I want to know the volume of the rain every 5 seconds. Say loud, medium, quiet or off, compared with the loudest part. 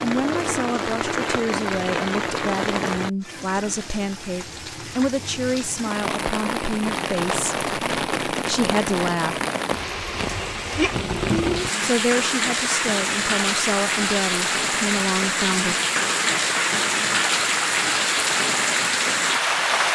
medium, medium, loud, loud.